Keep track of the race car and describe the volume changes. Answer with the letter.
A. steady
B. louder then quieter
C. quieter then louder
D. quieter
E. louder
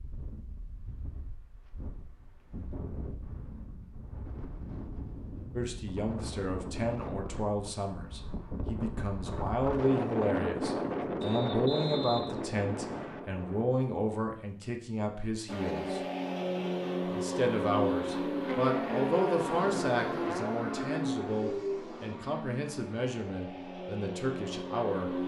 D.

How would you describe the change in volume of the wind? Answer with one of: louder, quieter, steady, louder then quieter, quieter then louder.
louder.